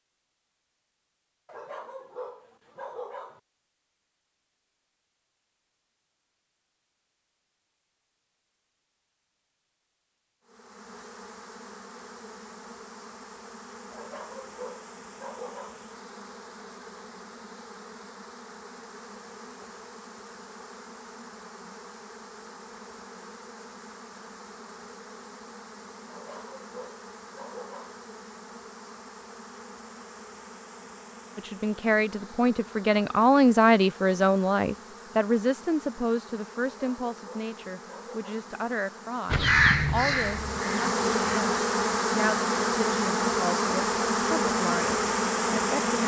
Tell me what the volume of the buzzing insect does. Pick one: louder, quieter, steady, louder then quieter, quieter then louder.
louder.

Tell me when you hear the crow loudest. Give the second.
40 s.